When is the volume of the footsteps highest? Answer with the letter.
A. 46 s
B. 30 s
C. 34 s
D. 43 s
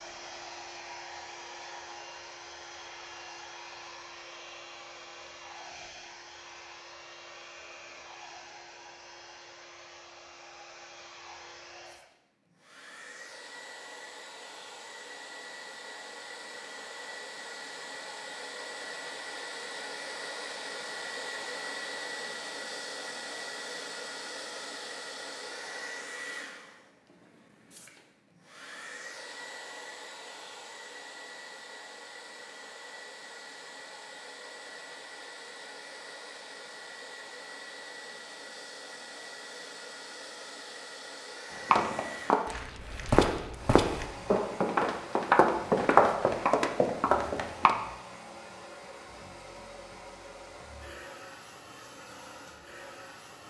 A.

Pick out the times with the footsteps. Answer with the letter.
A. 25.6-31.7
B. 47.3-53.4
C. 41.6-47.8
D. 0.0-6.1
C.